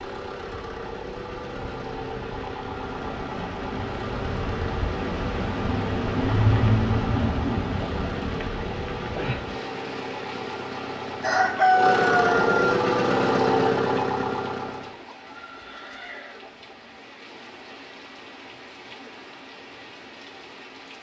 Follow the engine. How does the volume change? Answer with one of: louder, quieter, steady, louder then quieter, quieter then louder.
louder.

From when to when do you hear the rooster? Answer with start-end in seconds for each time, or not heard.
11.2-12.8.